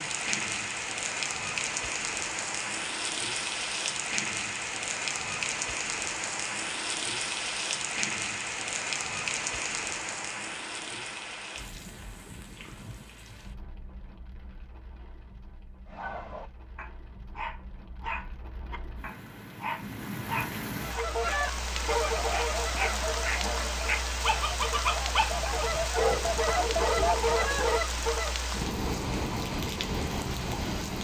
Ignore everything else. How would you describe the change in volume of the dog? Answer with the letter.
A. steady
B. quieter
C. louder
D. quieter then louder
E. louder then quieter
C.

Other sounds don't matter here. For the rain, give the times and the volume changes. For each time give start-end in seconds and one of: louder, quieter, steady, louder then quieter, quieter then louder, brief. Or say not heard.
0.0-30.9 quieter then louder.